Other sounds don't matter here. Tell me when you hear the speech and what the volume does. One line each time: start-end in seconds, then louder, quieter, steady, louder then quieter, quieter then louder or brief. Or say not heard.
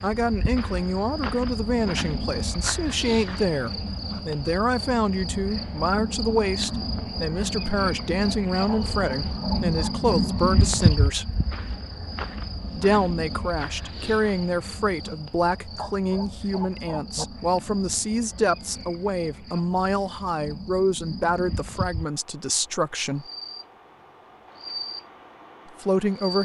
0.0-11.3 steady
12.8-23.2 steady
25.8-26.4 brief.